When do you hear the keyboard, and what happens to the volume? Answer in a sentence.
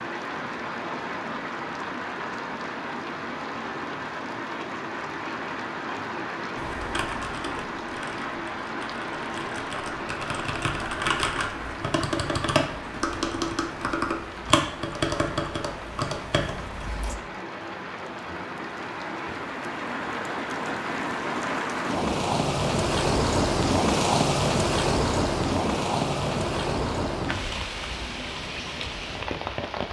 You can hear the keyboard from 6.5 to 17.1 s, getting louder.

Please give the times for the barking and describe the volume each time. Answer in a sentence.
The barking can't be heard in this clip.